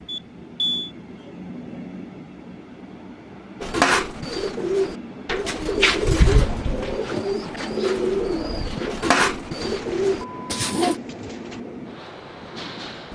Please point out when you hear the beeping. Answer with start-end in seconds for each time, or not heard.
0.1-0.9, 9.6-11.6.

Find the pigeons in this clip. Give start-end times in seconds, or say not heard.
3.6-11.0.